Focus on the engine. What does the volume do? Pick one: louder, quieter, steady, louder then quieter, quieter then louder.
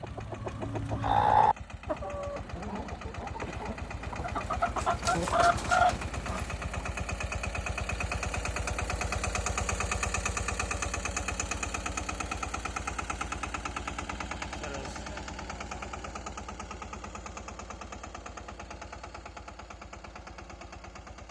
louder then quieter.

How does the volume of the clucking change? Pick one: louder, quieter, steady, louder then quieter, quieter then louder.
quieter then louder.